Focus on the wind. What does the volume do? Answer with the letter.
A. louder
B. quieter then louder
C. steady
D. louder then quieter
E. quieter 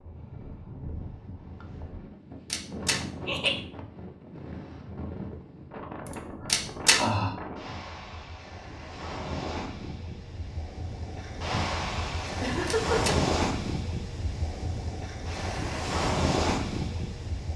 A.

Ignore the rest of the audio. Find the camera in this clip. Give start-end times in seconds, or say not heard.
2.5-3.0, 6.5-7.0, 12.7-13.2.